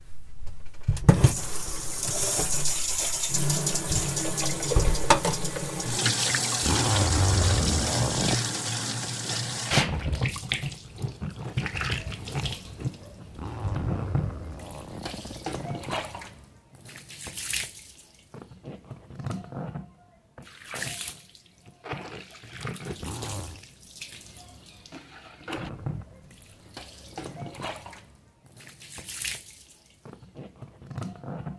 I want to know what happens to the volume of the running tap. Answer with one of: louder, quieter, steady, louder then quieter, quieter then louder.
quieter.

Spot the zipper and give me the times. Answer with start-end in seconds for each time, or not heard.
6.6-8.3, 13.3-15.6, 22.9-23.6.